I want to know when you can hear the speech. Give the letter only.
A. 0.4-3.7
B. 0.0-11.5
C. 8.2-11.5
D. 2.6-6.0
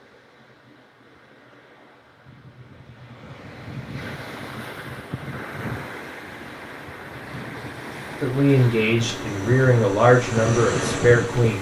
C.